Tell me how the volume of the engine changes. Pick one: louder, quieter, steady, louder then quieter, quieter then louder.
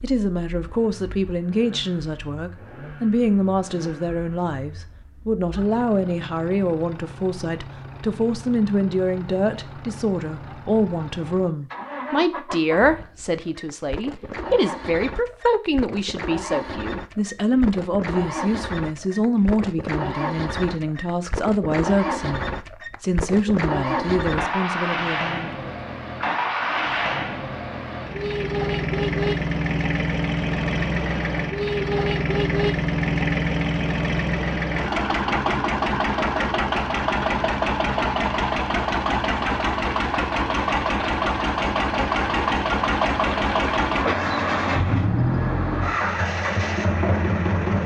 louder.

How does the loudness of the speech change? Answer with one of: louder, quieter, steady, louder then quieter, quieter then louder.
steady.